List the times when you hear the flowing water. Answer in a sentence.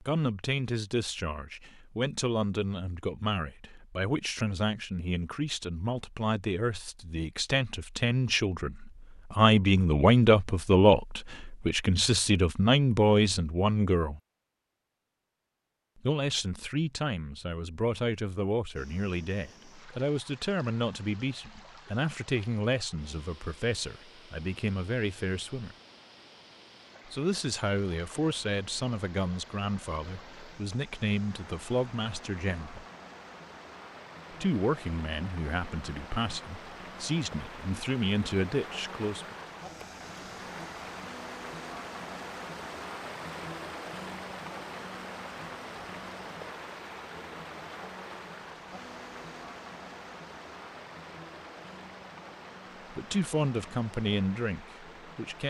The flowing water can be heard from 18.8 to 55.4 s.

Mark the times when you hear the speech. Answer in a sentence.
The speech can be heard from 0.0 to 14.2 s, from 16.0 to 25.8 s, from 27.1 to 32.9 s, from 34.3 to 39.4 s and from 52.9 to 55.4 s.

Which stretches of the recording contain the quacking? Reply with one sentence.
The quacking can't be heard in this clip.